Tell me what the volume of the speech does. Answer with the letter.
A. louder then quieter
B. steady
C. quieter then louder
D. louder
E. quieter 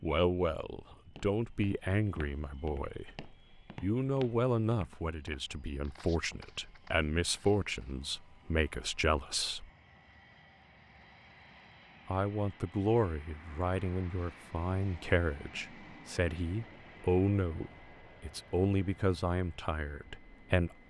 B.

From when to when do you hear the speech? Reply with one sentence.
You can hear the speech from 0.0 to 9.7 s and from 12.1 to 20.7 s.